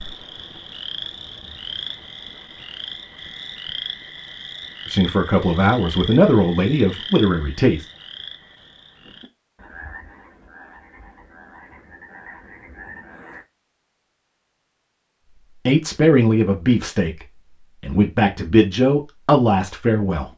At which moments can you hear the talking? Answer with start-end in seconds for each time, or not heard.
4.8-7.8, 15.4-20.3.